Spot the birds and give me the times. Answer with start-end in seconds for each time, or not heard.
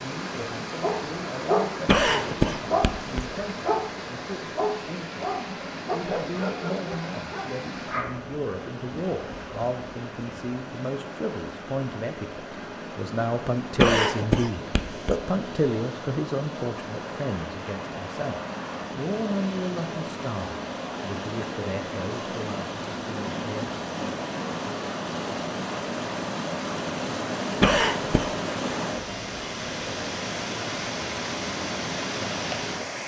not heard.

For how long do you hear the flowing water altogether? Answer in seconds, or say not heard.
33 s.